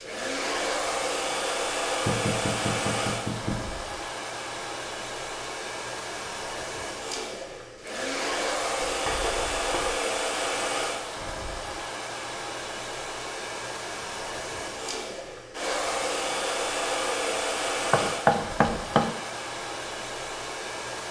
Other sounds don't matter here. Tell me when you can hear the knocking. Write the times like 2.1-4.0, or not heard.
2.0-3.6, 8.8-9.9, 17.9-19.1.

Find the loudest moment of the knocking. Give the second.
18 s.